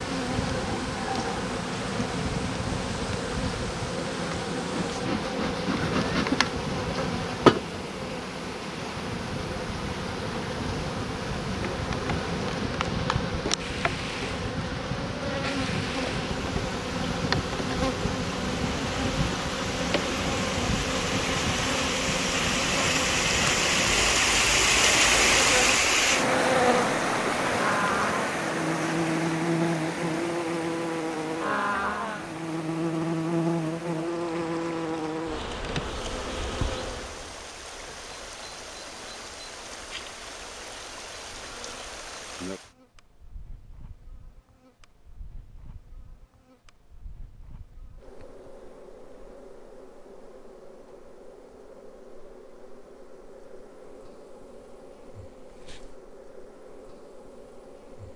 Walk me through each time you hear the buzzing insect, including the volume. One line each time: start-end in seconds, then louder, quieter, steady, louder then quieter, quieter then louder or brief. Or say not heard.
0.0-58.1 quieter.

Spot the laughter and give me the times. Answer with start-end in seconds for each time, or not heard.
5.8-6.5.